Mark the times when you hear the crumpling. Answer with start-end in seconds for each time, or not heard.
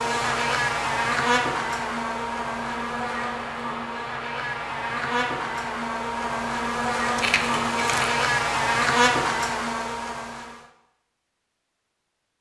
7.2-8.1.